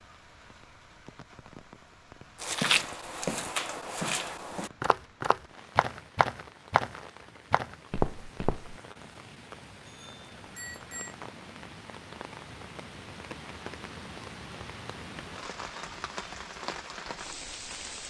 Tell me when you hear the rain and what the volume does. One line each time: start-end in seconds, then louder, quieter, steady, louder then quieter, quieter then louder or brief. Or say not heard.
0.0-18.0 louder.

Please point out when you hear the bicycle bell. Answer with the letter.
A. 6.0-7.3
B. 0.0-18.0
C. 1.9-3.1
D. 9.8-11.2
D.